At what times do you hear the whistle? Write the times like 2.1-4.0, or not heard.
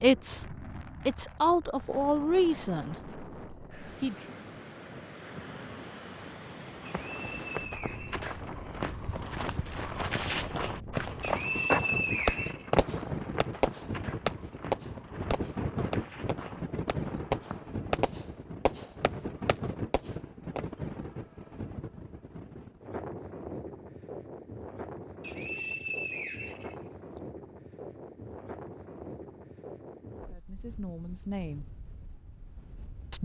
6.8-8.8, 11.2-12.7, 25.2-27.2.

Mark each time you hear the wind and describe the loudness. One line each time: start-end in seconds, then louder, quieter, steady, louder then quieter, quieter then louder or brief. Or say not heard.
0.0-33.2 louder then quieter.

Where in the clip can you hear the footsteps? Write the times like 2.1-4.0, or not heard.
6.8-17.6.